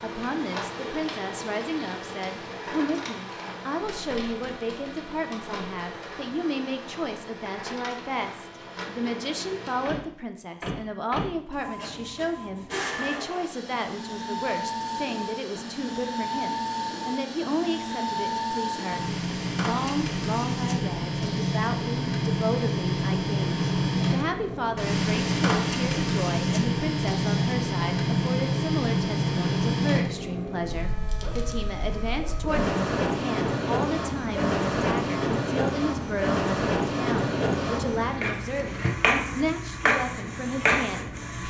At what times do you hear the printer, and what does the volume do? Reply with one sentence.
The printer can be heard from 0.0 to 41.4 s, getting louder.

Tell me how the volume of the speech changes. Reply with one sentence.
The volume of the speech stays about the same.